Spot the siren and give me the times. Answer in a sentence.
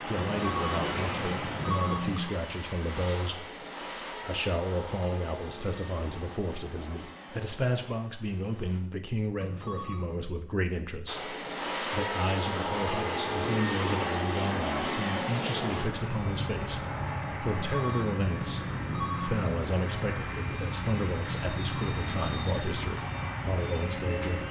The siren can't be heard in this clip.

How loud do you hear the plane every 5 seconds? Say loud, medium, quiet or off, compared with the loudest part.
medium, quiet, loud, loud, loud.